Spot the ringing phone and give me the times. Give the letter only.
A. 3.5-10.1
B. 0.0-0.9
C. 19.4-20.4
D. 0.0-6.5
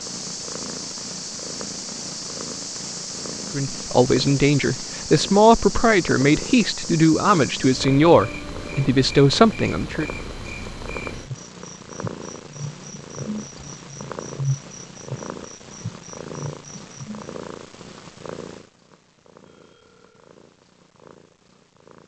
C.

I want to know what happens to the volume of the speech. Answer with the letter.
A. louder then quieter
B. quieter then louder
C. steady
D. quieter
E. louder
C.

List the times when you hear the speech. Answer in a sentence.
You can hear the speech from 3.5 to 10.1 s.